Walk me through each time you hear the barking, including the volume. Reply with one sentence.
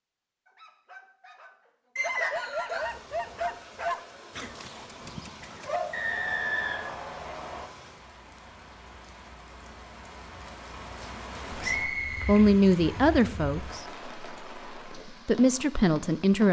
You can hear the barking from 0.5 to 6.0 s, getting louder then quieter.